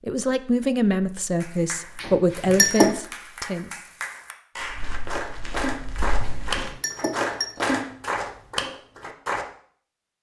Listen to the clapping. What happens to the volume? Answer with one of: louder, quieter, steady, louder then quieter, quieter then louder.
louder.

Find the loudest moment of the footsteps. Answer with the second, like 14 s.
6 s.